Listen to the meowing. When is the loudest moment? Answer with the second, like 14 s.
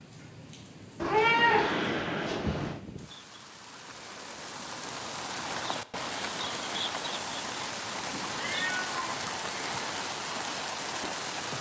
1 s.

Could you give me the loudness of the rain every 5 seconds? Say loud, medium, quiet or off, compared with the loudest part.
medium, loud, loud.